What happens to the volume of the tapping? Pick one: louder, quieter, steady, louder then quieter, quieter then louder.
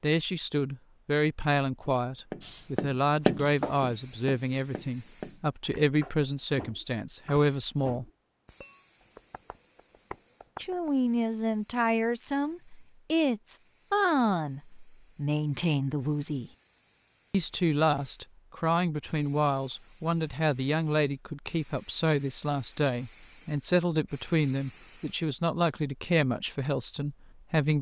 quieter.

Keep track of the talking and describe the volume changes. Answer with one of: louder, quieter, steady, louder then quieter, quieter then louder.
steady.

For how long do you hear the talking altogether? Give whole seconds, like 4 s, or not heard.
24 s.